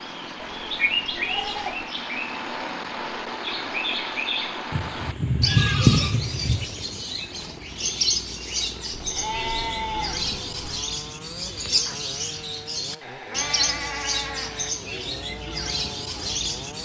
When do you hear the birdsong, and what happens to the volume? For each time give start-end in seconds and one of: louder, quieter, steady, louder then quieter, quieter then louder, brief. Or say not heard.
0.0-16.8 steady.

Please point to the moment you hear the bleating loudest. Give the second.
6 s.